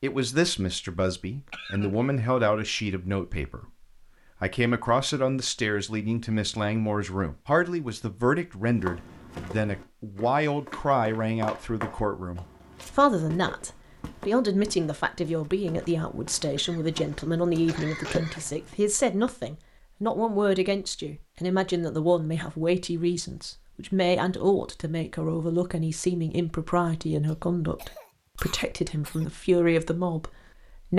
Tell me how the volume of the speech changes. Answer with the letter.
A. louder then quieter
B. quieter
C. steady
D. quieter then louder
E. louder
C.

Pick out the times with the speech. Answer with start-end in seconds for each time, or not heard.
0.0-30.9.